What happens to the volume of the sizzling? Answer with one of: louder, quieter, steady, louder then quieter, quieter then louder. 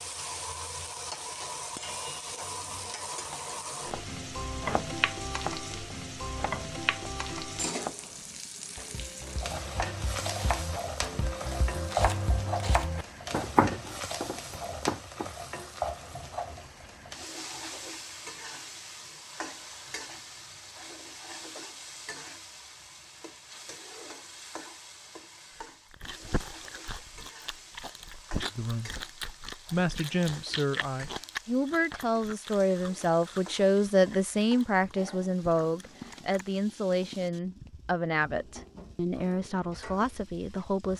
quieter.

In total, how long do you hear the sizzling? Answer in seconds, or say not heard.
41 s.